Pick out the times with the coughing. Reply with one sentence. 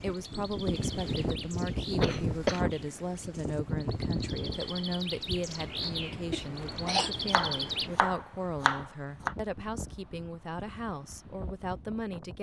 The coughing can be heard from 2.0 to 2.6 s and from 6.3 to 7.1 s.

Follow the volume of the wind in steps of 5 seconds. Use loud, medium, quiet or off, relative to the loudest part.
loud, medium, quiet.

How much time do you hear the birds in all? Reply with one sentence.
The birds can be heard for 8 seconds in total.